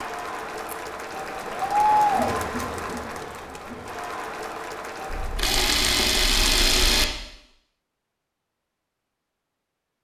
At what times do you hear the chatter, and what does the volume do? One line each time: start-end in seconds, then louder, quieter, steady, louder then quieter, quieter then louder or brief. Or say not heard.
0.0-5.6 louder then quieter.